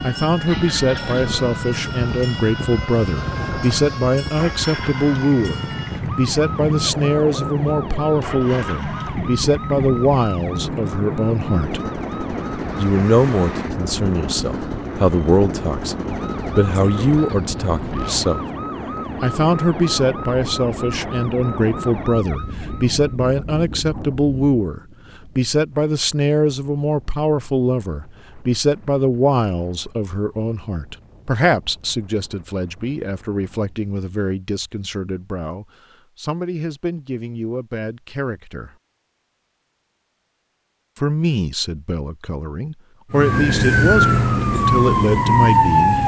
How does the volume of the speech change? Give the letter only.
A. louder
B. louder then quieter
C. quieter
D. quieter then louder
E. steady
E.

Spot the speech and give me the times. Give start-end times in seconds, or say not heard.
0.0-11.8, 12.8-18.4, 19.2-38.7, 41.0-46.0.